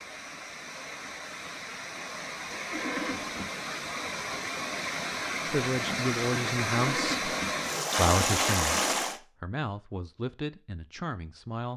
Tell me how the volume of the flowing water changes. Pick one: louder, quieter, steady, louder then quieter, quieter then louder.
louder.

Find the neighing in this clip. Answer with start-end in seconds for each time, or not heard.
2.6-3.5, 6.7-7.4.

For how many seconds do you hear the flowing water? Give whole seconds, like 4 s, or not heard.
9 s.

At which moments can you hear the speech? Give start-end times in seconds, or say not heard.
5.5-7.2, 8.0-11.7.